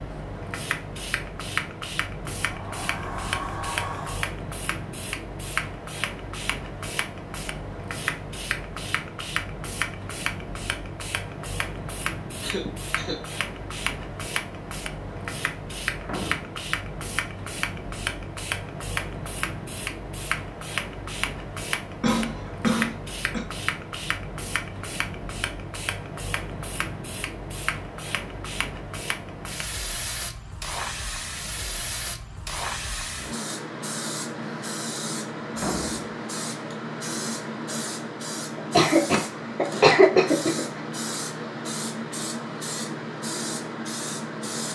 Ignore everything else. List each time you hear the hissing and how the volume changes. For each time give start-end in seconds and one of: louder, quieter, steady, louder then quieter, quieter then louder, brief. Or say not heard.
0.0-44.6 steady.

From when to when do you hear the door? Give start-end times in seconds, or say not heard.
2.4-4.3, 16.0-16.6, 35.5-36.0.